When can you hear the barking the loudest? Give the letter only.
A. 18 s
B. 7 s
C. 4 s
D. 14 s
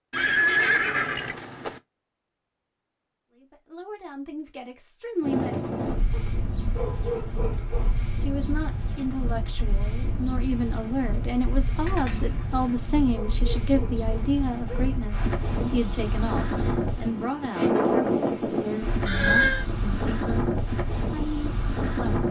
B.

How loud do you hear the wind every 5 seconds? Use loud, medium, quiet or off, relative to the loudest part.
off, medium, medium, loud, loud.